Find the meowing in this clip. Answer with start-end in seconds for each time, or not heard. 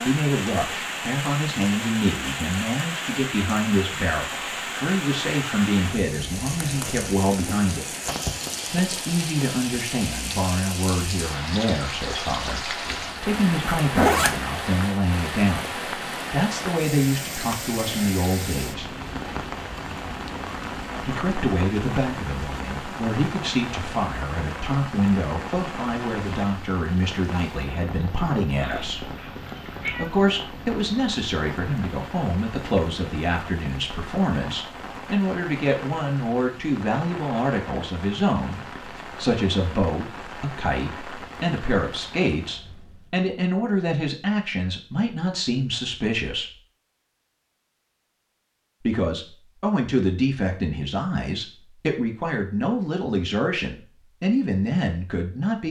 28.6-30.2.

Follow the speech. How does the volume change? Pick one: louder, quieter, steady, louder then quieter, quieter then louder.
steady.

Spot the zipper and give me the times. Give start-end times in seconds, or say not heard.
12.8-14.4.